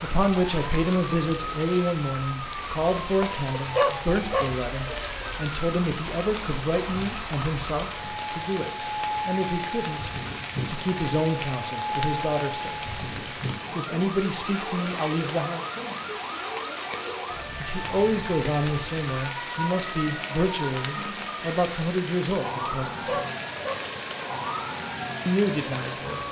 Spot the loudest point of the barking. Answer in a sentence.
The volume of the barking peaks at 4 seconds.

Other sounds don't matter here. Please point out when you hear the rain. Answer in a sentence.
The rain can be heard from 0.0 to 26.2 s.